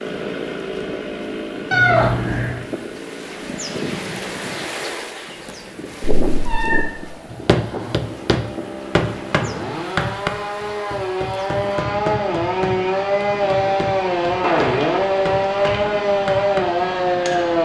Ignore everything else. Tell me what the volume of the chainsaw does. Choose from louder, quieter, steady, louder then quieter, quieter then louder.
quieter then louder.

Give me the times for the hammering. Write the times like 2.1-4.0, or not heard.
7.3-17.6.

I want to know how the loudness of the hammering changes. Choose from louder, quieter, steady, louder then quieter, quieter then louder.
quieter.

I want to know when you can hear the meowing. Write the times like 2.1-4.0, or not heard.
1.7-2.6, 6.2-6.8, 14.4-16.1.